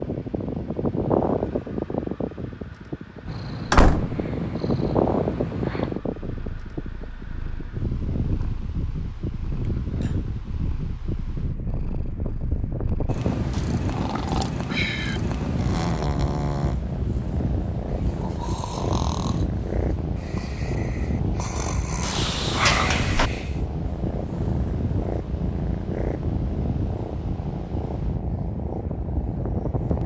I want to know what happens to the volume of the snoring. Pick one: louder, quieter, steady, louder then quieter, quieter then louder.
quieter then louder.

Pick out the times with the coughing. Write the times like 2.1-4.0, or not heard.
not heard.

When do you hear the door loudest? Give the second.
4 s.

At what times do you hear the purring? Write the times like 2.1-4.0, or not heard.
3.2-30.0.